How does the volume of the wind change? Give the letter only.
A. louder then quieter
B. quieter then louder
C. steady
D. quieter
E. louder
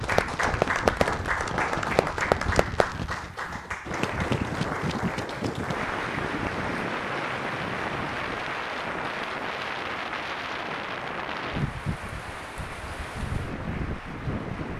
C.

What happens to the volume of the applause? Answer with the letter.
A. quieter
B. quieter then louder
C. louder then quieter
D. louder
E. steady
A.